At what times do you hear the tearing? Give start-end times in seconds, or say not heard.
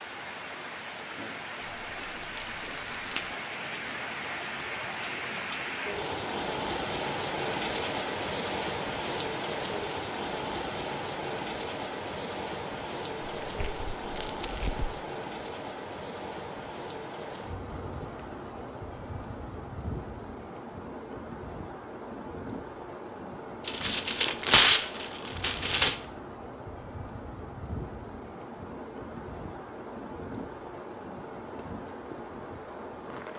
1.6-3.2, 13.4-14.9, 23.6-25.9.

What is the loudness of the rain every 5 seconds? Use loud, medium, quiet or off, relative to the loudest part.
medium, loud, loud, medium, medium, medium, medium.